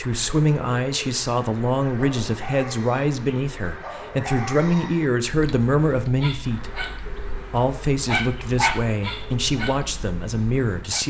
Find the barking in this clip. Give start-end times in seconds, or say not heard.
1.8-11.0.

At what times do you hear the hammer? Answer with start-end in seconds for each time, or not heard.
not heard.